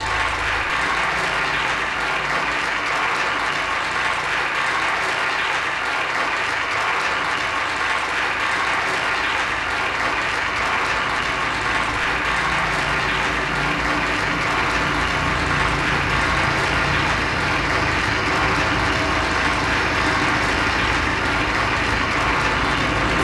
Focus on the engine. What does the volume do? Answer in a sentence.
The volume of the engine goes up.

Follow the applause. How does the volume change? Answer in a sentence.
The loudness of the applause stays about the same.